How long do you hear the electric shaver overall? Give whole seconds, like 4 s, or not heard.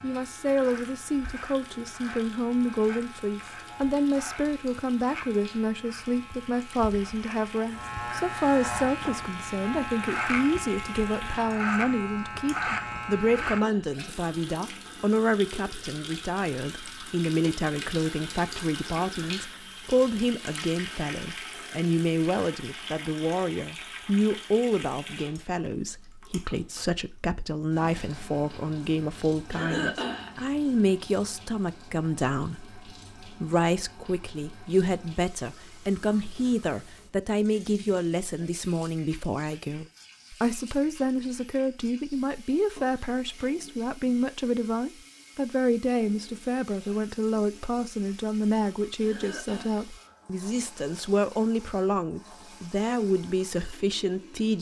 14 s.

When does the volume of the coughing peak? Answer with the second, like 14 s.
30 s.